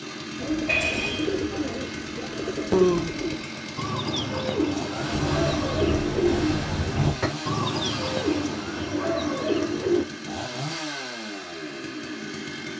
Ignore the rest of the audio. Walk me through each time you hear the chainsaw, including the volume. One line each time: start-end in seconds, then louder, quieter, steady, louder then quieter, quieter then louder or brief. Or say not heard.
0.0-12.7 steady.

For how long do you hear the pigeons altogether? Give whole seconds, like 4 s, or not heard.
10 s.